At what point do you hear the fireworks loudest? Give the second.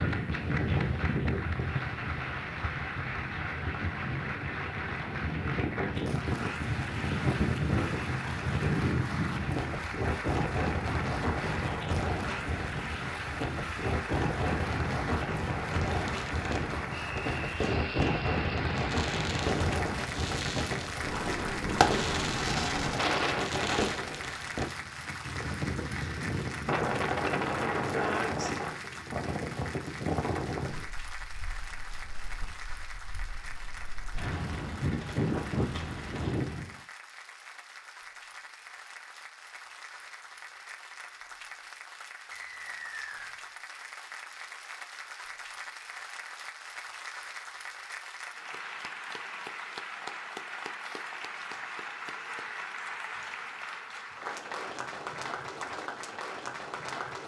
22 s.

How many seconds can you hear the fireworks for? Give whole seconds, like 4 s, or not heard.
9 s.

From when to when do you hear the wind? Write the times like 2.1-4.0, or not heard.
0.0-36.8.